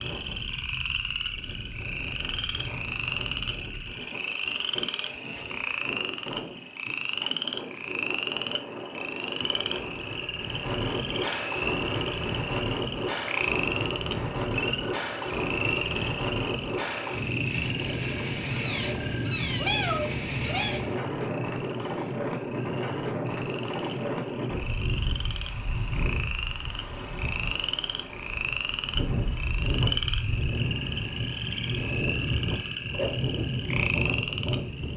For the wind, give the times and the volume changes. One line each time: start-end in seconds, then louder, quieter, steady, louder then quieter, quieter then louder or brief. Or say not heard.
0.0-34.9 louder.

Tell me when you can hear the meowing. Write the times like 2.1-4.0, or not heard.
18.5-20.8.